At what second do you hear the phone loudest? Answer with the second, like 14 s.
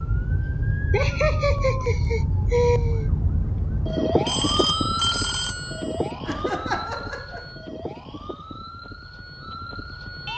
5 s.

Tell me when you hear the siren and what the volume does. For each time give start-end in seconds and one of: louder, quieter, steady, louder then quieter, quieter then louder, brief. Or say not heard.
0.0-10.3 quieter.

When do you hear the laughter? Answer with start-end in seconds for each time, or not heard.
0.9-3.1, 6.2-7.5.